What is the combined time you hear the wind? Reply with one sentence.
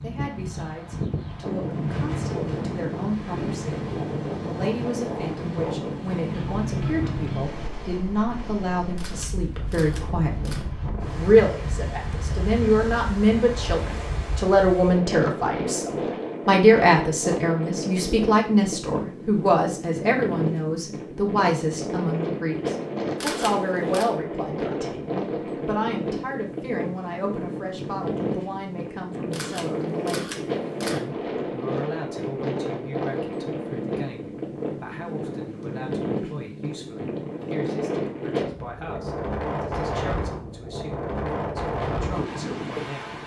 You can hear the wind for 43 seconds altogether.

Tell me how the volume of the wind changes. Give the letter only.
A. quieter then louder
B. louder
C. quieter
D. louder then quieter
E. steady
E.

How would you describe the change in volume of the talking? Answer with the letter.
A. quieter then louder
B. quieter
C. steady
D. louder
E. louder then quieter
E.